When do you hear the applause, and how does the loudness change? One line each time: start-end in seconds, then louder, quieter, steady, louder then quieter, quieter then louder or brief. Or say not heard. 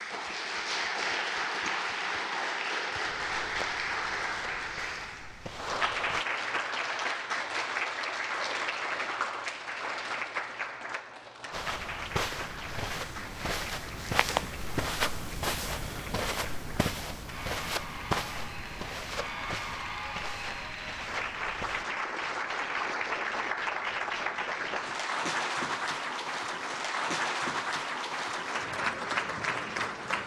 0.0-30.2 quieter then louder.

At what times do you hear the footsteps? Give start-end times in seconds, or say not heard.
3.0-6.2, 11.5-21.9.